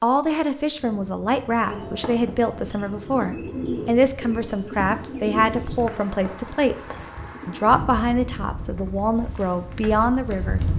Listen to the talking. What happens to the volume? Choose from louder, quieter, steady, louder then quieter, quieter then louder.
steady.